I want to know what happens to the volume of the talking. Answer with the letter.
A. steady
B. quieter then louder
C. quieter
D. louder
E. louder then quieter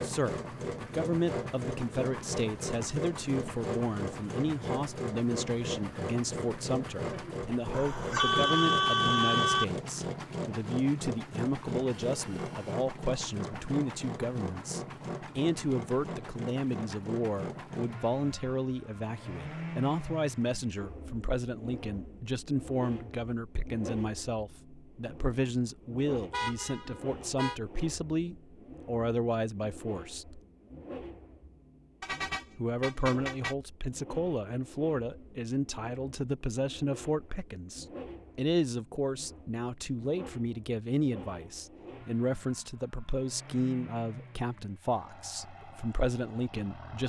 A.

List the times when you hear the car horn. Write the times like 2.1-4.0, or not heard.
7.7-9.7, 26.3-27.6, 32.0-33.5.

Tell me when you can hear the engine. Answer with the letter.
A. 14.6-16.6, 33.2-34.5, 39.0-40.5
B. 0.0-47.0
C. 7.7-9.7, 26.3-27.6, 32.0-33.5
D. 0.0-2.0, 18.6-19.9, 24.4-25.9
B.